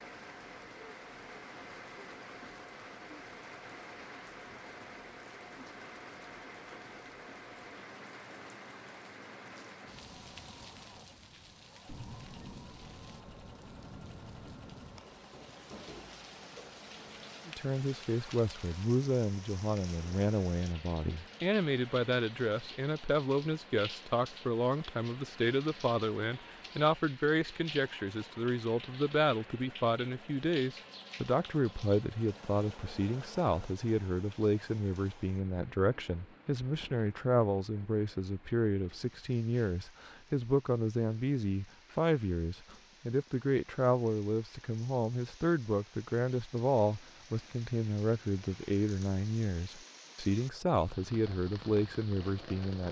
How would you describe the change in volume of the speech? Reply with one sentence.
The volume of the speech stays about the same.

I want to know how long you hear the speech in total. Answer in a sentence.
You can hear the speech for 35 seconds altogether.